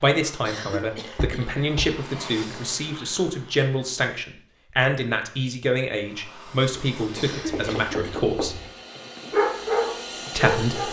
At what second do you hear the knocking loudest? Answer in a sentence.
The loudest moment of the knocking is at 8 seconds.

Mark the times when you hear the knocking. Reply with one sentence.
You can hear the knocking from 1.1 to 1.9 s and from 7.3 to 8.7 s.